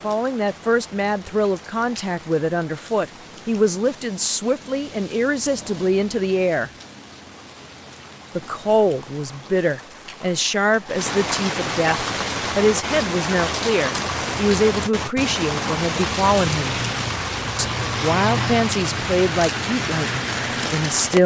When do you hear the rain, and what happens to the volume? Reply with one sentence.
The rain can be heard from 0.0 to 21.2 s, getting louder.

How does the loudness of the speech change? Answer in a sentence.
The loudness of the speech stays about the same.